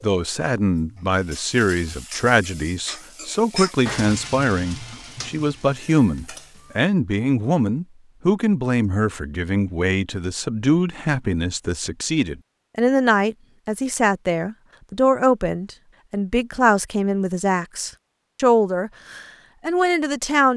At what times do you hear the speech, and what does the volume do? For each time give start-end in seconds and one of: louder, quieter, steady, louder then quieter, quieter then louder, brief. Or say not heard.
0.0-20.5 steady.